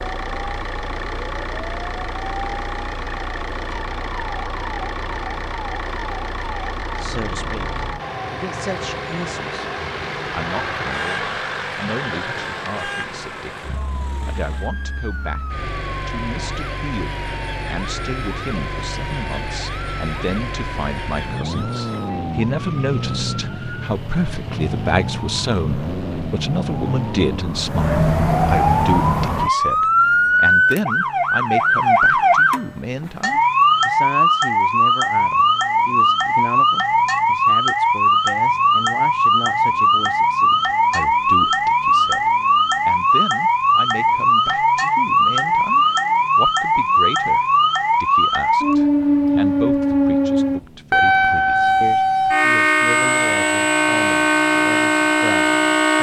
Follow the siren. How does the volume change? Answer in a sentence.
The volume of the siren goes up.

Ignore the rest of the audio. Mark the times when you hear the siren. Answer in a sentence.
You can hear the siren from 0.0 to 55.9 s.